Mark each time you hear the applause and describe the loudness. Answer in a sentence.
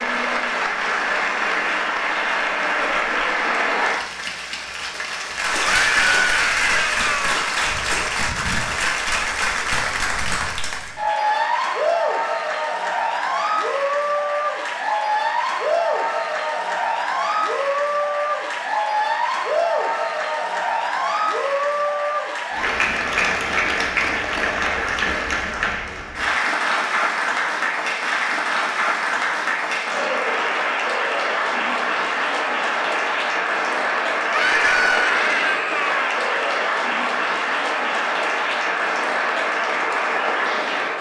You can hear the applause from 0.0 to 40.9 s, at a steady volume.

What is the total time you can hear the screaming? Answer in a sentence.
The screaming can be heard for 3 seconds in total.